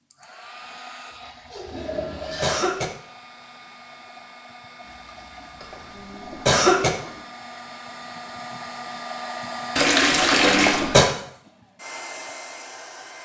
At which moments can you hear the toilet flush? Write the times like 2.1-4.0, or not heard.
1.1-2.6, 4.8-7.2, 9.8-10.8.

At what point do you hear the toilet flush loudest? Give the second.
10 s.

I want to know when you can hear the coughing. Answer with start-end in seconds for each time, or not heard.
1.6-2.9, 5.6-6.9, 10.1-11.1.